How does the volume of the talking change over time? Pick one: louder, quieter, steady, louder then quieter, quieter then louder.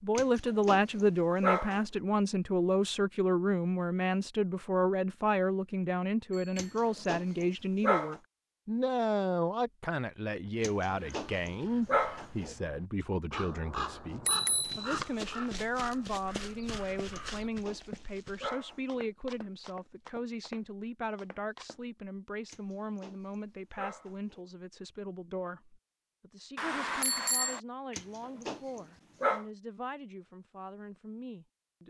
quieter.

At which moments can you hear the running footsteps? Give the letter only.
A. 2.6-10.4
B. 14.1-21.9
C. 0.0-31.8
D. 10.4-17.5
B.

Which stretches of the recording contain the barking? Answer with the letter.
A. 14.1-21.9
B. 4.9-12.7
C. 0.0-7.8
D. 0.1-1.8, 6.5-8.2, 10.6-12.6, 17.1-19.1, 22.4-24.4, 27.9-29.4
D.